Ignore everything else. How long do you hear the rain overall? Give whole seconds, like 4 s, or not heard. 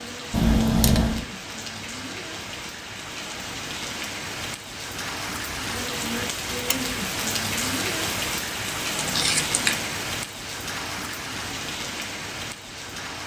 13 s.